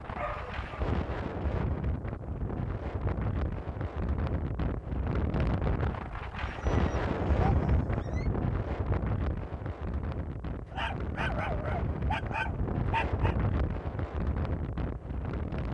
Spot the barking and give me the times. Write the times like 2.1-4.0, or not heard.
0.1-1.0, 6.4-8.3, 10.7-13.3.